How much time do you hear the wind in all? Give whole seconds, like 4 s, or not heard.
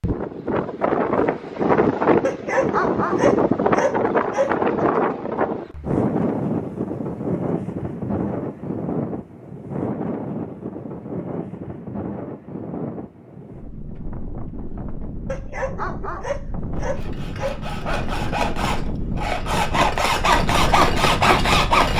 22 s.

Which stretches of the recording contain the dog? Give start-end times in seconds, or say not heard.
2.2-4.8, 15.2-18.1.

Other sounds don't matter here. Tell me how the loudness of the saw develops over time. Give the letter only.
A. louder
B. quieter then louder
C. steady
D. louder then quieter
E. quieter
A.